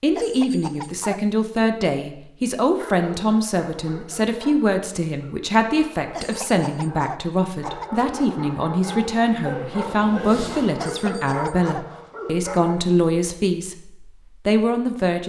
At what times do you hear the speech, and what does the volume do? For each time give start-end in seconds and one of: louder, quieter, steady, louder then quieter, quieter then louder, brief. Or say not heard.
0.0-15.2 steady.